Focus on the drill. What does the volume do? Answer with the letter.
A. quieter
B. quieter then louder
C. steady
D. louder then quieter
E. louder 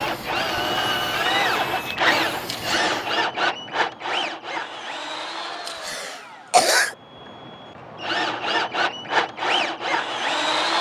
B.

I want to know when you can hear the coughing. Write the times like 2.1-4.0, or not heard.
2.5-3.1, 5.7-7.0.